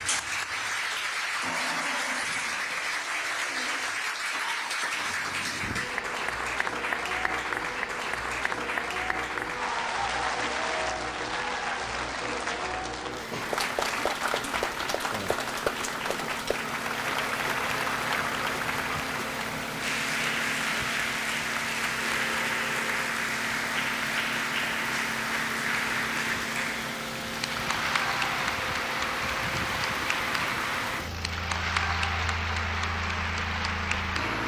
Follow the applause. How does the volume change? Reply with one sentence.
The loudness of the applause stays about the same.